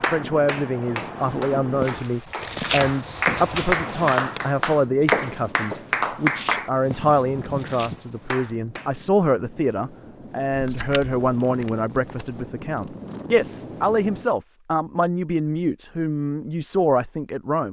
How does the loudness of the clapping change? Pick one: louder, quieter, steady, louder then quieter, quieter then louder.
louder then quieter.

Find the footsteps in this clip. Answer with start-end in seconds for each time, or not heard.
1.8-8.4.